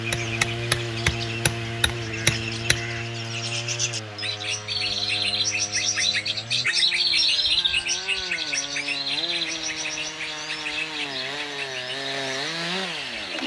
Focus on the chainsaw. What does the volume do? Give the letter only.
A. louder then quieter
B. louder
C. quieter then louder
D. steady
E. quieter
C.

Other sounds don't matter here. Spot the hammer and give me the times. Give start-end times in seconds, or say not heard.
0.1-2.9.